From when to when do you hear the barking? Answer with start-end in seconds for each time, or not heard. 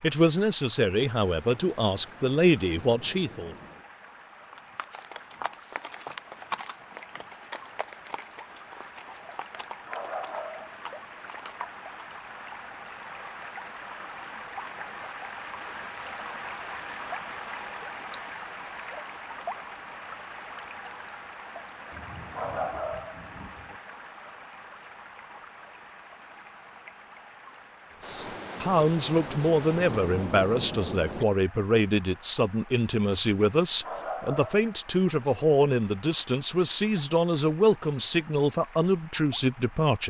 9.8-11.3, 22.3-23.8, 33.8-35.2.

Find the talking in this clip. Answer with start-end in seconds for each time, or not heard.
0.0-3.5, 28.0-40.0.